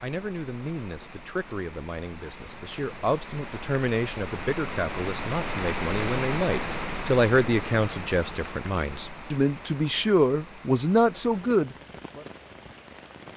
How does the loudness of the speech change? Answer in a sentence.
The volume of the speech goes up.